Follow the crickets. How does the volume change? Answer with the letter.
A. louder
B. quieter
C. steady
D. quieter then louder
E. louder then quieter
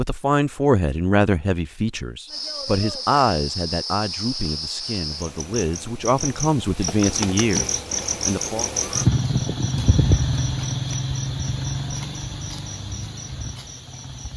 E.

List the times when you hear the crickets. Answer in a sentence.
The crickets can be heard from 2.2 to 14.3 s.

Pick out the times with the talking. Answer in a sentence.
You can hear the talking from 0.0 to 8.7 s.